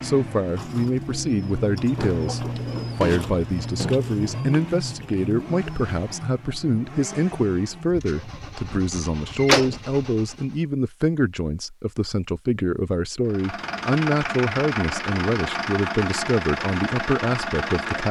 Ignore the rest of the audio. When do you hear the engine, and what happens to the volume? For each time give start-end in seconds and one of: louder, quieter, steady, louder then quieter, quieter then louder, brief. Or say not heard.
0.0-10.7 quieter
13.2-18.0 steady.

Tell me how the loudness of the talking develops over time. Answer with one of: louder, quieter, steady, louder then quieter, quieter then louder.
steady.